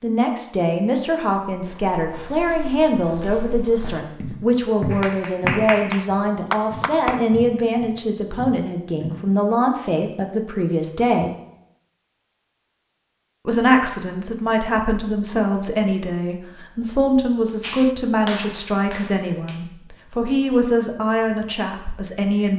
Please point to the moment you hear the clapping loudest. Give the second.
6 s.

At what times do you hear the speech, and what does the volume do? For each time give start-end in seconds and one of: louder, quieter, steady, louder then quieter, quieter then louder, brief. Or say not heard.
0.0-11.3 steady
13.4-22.5 steady.